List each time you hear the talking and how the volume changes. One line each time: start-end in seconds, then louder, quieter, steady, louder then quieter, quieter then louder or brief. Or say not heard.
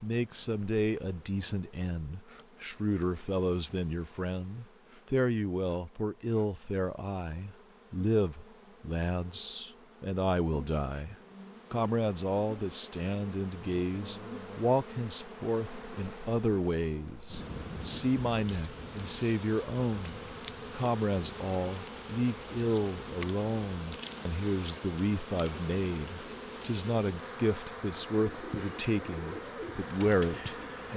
0.0-30.9 steady.